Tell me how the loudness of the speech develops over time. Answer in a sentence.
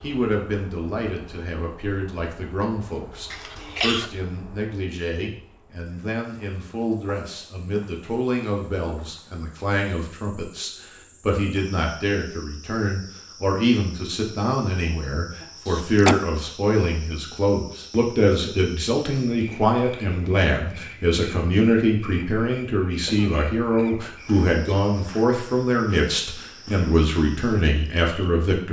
The loudness of the speech goes up.